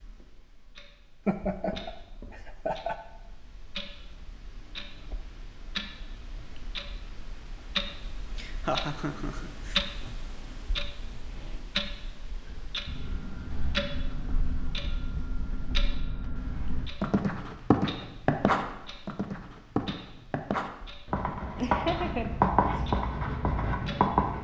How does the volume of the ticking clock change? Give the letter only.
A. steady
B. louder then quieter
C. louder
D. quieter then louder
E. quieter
B.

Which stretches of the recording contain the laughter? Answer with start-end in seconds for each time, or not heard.
1.2-3.0, 8.3-9.8, 21.2-22.8.